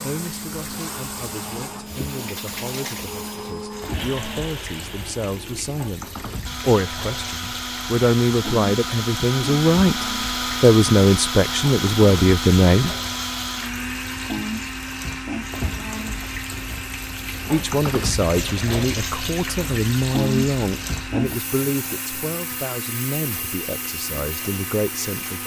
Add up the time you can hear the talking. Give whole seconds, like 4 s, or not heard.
21 s.